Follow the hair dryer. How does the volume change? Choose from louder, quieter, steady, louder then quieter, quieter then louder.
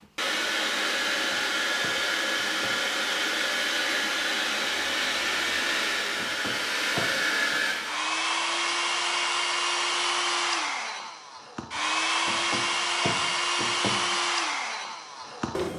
steady.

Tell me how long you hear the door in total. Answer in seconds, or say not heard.
4 s.